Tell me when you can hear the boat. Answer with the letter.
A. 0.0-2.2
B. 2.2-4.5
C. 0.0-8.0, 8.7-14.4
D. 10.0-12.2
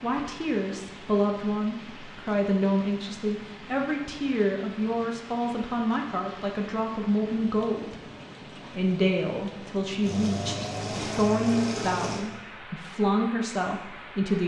D.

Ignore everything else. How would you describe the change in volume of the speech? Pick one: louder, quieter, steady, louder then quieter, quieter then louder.
steady.